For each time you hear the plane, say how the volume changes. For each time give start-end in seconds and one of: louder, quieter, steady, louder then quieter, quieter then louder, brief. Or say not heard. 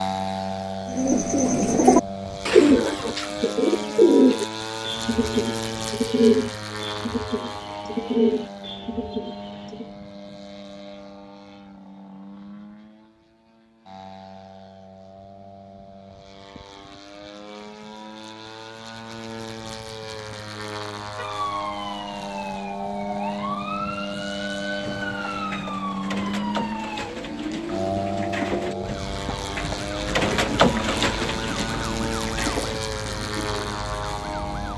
0.0-34.7 quieter then louder.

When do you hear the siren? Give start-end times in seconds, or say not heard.
21.1-34.7.